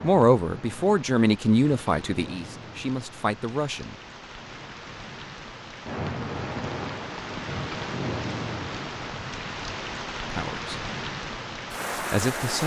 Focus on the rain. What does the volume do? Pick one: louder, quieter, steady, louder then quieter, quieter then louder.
louder.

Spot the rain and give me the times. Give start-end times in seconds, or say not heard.
0.0-12.6.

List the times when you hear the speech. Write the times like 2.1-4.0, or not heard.
0.0-4.0, 10.3-10.8, 11.9-12.6.